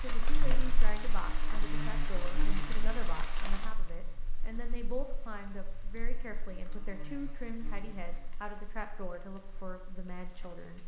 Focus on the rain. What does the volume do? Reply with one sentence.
The volume of the rain goes down.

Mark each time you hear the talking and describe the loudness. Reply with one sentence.
You can hear the talking from 0.0 to 10.8 s, at a steady volume.